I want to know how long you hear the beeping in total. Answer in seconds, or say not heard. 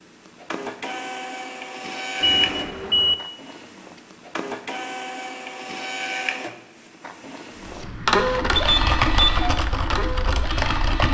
2 s.